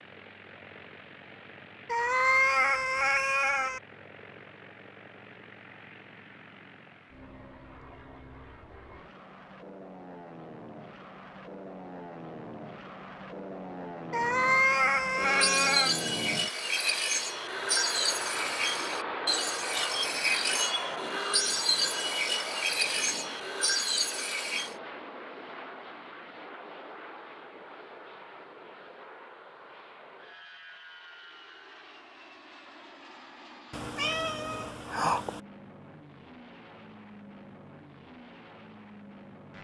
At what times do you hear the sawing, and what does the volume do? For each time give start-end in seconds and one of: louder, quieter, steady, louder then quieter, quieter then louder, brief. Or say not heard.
15.2-24.8 steady.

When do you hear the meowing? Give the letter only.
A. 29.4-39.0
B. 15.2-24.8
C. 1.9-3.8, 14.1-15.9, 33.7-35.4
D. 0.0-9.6
C.